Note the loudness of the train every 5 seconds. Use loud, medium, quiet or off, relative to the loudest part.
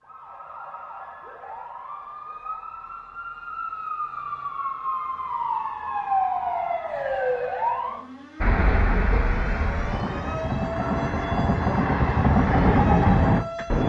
off, medium, loud.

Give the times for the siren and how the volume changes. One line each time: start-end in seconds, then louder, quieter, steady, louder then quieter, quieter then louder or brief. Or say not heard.
0.0-13.8 louder then quieter.